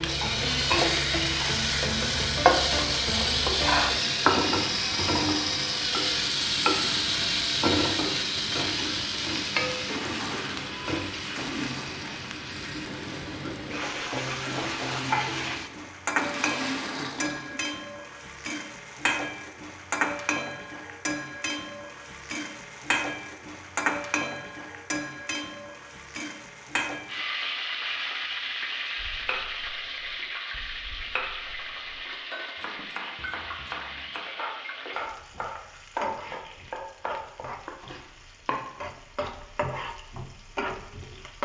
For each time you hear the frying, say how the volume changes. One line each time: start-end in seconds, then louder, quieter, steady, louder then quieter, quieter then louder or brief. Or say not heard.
0.0-41.4 quieter.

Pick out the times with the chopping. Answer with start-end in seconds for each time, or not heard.
28.9-38.6.